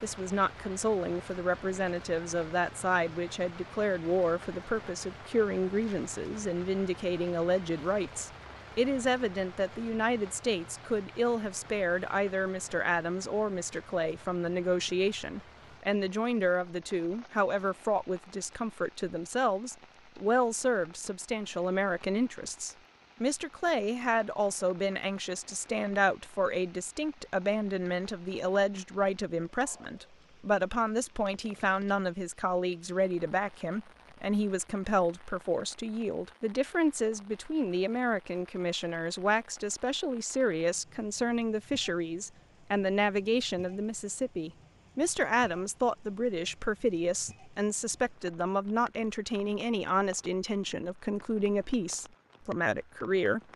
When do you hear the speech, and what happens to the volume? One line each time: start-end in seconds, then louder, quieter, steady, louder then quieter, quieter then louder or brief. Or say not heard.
0.0-53.4 steady.